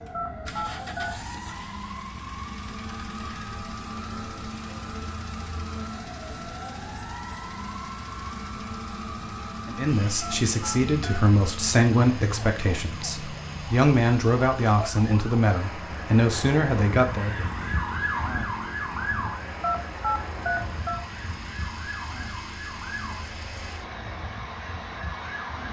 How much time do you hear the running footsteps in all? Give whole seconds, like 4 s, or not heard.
not heard.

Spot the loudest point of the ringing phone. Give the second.
20 s.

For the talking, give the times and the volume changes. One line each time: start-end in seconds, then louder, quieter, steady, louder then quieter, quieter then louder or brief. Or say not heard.
9.7-17.4 steady.